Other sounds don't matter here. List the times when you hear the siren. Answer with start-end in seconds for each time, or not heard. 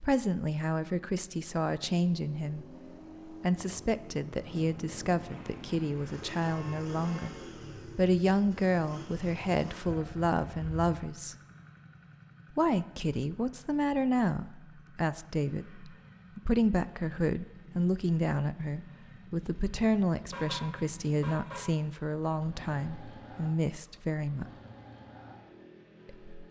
not heard.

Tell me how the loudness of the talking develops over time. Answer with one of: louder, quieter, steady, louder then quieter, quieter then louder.
steady.